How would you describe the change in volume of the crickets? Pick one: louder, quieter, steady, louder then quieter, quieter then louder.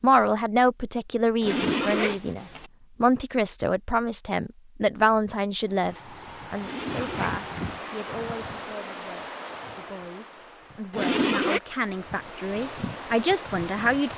quieter then louder.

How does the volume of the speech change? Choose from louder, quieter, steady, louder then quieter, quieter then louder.
quieter then louder.